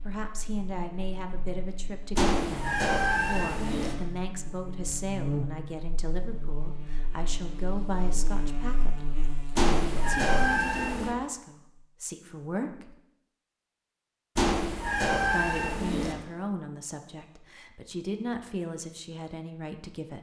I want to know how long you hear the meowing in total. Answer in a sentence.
You can hear the meowing for 5 seconds altogether.